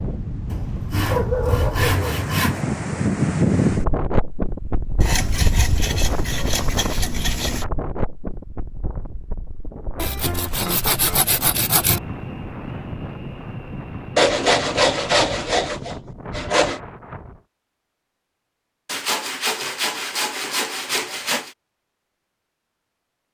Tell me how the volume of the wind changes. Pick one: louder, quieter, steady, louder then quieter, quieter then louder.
quieter.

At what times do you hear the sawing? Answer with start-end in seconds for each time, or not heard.
0.5-2.6, 5.0-7.7, 9.9-12.0, 14.2-16.8, 18.9-21.6.